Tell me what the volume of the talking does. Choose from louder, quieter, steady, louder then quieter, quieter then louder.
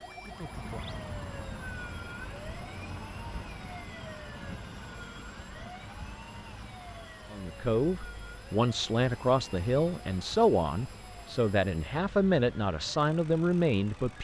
steady.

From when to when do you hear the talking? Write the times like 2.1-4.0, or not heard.
7.3-14.1.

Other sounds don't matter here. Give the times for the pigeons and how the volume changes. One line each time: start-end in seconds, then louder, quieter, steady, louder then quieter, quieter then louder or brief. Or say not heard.
not heard.